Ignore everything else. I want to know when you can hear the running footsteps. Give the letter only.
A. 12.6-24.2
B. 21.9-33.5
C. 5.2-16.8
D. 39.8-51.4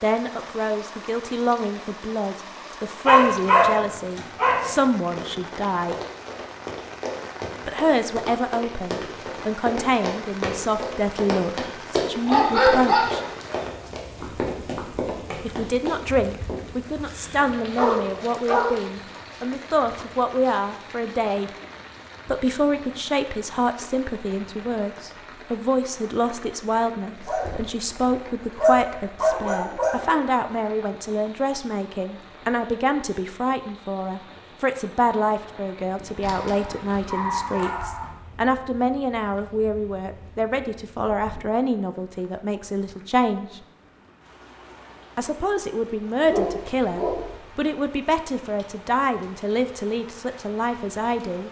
C.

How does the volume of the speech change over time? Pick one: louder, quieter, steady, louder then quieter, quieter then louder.
steady.